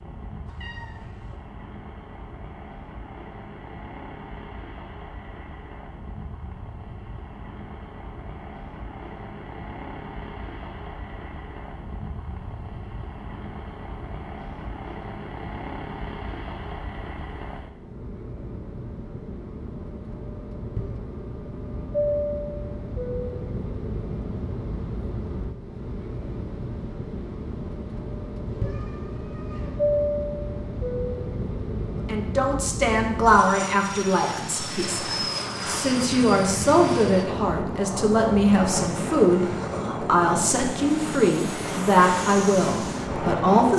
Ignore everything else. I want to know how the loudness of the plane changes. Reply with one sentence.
The loudness of the plane goes up.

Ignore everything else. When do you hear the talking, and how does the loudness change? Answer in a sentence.
The talking can be heard from 32.0 to 43.7 s, at a steady volume.